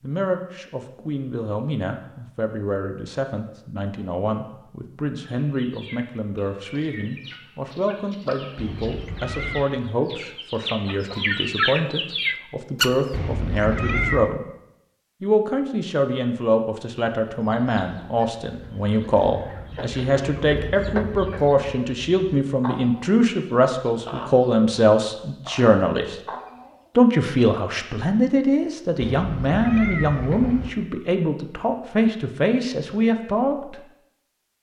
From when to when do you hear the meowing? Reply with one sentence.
You can hear the meowing from 8.6 to 9.7 s, from 13.1 to 14.3 s and from 29.0 to 30.7 s.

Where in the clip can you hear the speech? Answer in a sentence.
You can hear the speech from 0.0 to 14.4 s, from 15.2 to 26.2 s and from 26.9 to 33.8 s.